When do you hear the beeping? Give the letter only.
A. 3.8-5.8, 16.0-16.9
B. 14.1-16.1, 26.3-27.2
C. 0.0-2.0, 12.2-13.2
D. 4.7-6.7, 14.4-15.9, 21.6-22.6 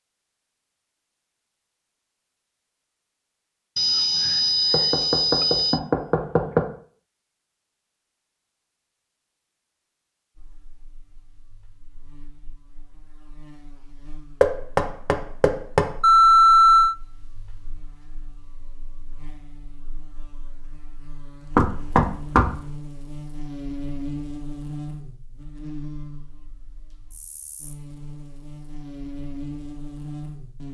A.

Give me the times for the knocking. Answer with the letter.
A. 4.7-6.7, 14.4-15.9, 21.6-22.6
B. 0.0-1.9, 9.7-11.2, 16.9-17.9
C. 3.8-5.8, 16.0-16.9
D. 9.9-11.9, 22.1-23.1
A.